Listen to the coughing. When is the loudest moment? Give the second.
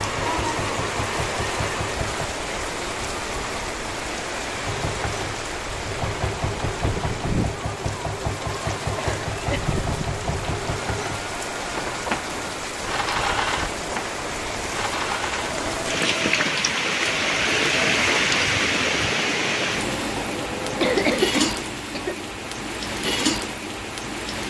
21 s.